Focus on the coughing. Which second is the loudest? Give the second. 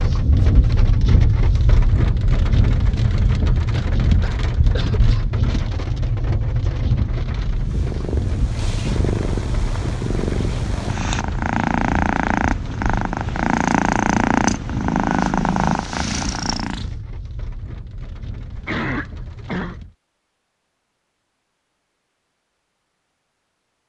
19 s.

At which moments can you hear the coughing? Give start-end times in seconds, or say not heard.
3.7-5.2, 18.5-19.8.